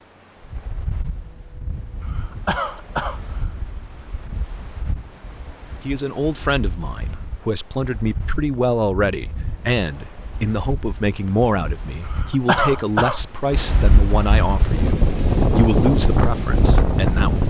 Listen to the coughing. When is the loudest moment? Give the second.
13 s.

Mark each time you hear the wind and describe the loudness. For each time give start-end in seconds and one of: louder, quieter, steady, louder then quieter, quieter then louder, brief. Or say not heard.
0.0-17.4 louder.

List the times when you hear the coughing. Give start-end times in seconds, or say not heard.
2.0-3.4, 12.1-13.2.